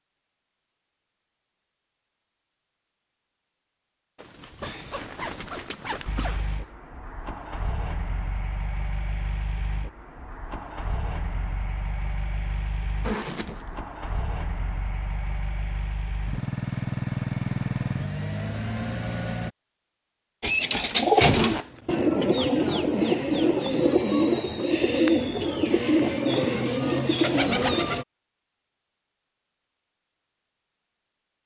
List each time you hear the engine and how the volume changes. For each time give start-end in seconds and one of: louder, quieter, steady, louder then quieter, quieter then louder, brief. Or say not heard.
6.0-19.5 louder.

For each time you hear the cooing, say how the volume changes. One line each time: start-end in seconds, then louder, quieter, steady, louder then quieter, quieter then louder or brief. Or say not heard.
20.4-28.1 steady.